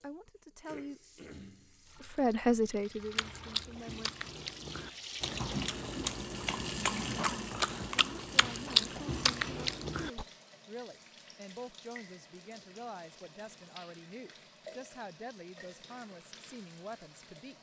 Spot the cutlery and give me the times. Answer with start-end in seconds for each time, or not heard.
not heard.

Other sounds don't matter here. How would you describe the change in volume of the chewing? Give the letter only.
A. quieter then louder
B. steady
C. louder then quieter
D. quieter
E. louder
E.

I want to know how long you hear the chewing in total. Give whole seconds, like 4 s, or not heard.
7 s.